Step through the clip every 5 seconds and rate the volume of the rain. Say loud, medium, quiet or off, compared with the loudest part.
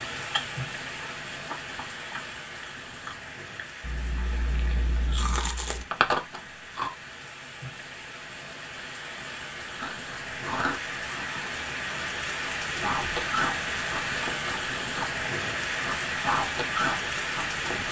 medium, medium, loud, loud.